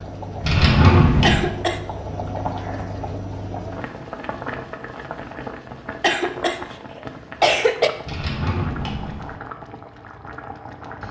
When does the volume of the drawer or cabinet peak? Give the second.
1 s.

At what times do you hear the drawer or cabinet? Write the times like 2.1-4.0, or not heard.
0.4-1.5, 8.1-9.3.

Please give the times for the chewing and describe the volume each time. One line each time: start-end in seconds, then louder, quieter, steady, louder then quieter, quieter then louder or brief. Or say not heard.
not heard.